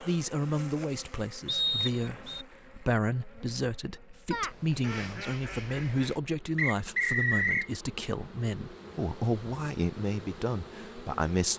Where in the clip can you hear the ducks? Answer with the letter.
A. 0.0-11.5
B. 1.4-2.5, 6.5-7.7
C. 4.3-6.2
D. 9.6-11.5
C.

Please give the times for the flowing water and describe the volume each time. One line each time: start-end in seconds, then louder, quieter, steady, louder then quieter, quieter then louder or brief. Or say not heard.
not heard.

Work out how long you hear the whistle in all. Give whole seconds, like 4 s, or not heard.
2 s.